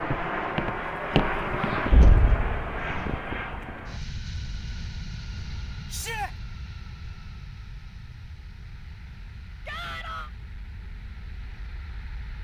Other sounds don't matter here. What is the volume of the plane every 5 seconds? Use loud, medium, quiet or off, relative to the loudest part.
loud, quiet, quiet.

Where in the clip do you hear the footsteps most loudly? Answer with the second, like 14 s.
1 s.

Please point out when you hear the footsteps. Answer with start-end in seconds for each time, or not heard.
0.0-1.9.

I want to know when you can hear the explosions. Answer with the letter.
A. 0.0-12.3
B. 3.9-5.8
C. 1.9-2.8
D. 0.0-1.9
C.